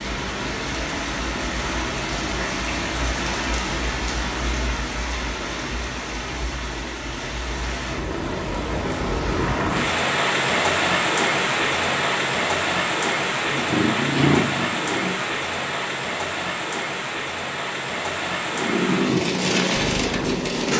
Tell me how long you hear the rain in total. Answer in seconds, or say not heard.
21 s.